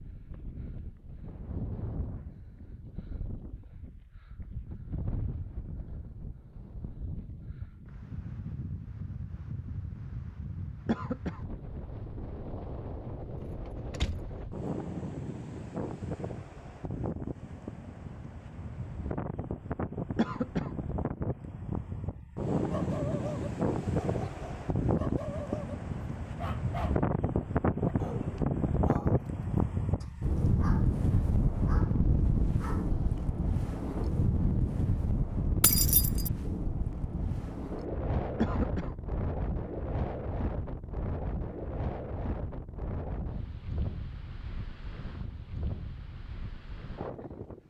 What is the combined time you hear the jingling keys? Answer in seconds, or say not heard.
2 s.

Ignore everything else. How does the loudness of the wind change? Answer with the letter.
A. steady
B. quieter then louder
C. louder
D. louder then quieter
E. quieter
D.